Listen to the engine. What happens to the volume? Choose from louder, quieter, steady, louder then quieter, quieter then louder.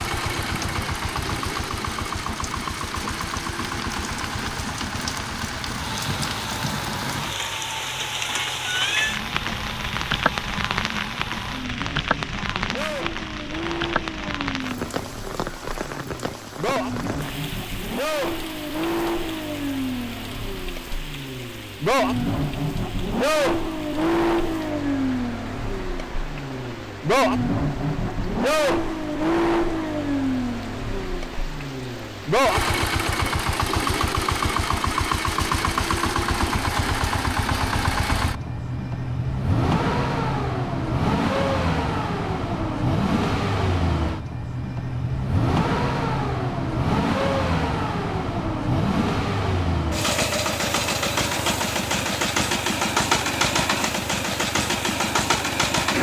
louder.